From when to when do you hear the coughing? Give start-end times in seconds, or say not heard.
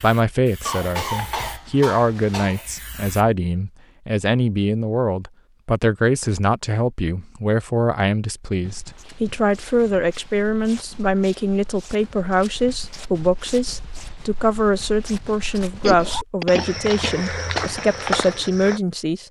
0.7-2.6, 15.8-17.3.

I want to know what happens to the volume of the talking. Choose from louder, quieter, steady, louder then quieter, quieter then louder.
steady.